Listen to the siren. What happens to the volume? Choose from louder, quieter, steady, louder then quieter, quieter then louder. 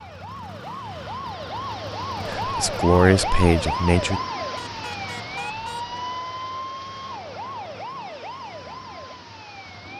louder then quieter.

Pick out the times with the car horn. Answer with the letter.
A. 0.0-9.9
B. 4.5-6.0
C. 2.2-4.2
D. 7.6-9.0
B.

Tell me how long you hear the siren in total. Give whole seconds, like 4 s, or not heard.
10 s.